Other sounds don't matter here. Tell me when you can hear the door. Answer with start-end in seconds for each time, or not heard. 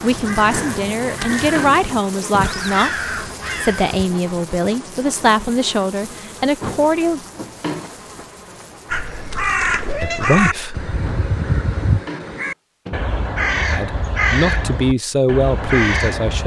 0.5-2.5, 6.6-7.9, 11.0-13.0.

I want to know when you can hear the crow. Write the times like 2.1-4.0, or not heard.
0.0-4.0, 8.9-16.4.